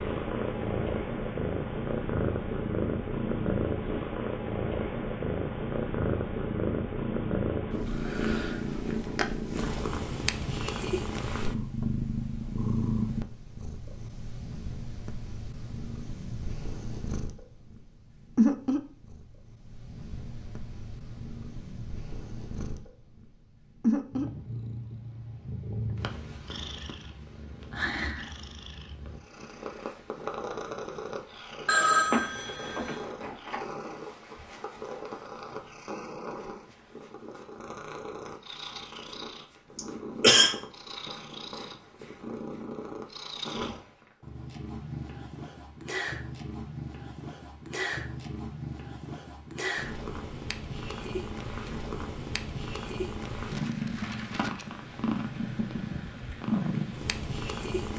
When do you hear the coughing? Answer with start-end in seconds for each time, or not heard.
39.8-40.5.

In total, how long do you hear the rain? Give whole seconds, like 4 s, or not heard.
not heard.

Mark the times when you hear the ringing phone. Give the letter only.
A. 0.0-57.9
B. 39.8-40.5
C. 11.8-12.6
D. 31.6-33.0
D.